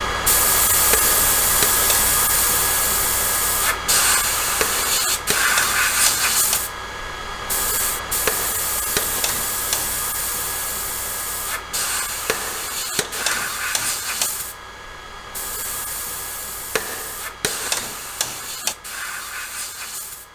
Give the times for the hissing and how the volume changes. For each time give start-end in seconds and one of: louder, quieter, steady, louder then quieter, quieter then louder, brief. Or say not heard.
0.0-20.3 quieter.